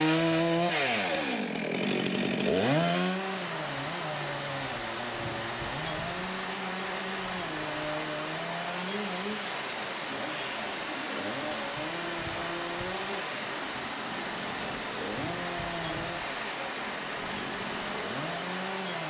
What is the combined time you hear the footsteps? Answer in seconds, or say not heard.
not heard.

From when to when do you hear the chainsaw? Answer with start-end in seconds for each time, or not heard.
0.0-19.0.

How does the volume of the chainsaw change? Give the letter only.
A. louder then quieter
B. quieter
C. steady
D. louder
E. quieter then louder
B.